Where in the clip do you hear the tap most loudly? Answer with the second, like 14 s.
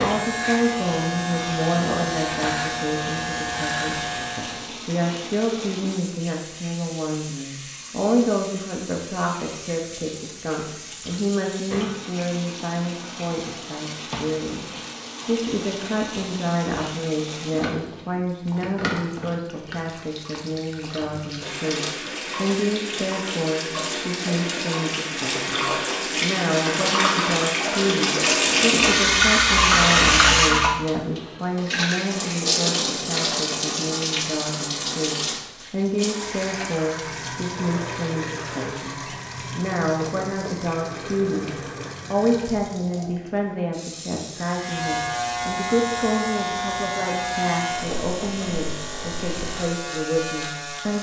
30 s.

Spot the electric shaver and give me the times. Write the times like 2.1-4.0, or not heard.
0.0-4.7, 44.4-50.9.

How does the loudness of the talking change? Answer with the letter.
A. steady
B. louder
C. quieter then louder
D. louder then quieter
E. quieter
A.